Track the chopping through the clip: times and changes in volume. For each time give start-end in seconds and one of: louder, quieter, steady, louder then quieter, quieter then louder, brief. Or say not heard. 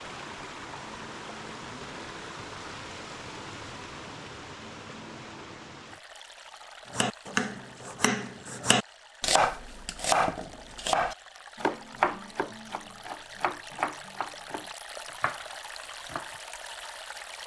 6.9-16.4 quieter.